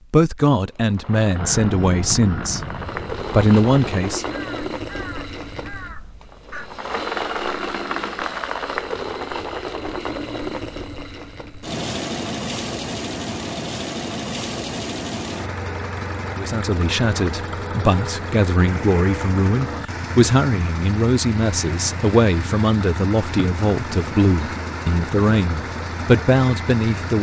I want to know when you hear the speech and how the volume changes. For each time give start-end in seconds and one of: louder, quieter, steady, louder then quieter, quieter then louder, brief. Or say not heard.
0.1-2.6 brief
3.3-4.2 brief
16.4-27.1 steady.